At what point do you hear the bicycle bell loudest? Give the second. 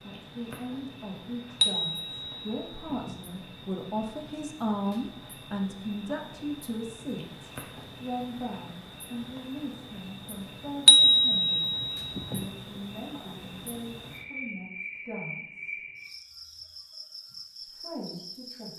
11 s.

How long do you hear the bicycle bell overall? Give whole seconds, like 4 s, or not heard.
3 s.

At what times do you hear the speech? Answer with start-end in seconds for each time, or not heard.
0.0-15.8, 17.6-18.7.